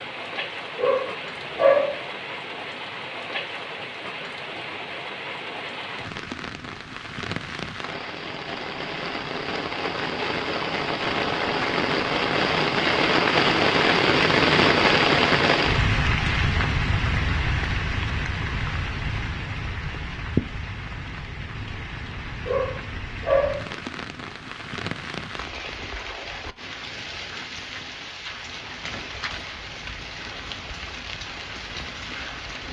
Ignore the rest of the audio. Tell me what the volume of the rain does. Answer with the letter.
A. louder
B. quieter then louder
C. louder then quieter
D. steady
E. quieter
C.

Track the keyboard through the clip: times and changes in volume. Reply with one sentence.
The keyboard can't be heard in this clip.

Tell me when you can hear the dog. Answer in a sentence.
You can hear the dog from 0.8 to 2.0 s and from 22.4 to 23.6 s.